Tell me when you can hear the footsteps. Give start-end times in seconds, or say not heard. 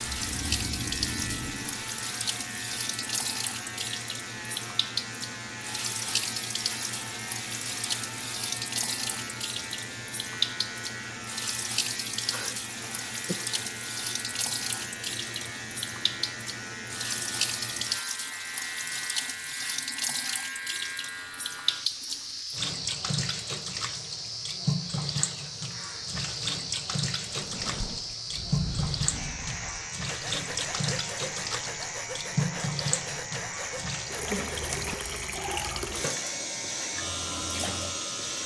not heard.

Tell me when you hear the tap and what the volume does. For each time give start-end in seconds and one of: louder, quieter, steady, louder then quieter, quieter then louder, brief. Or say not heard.
0.0-38.4 steady.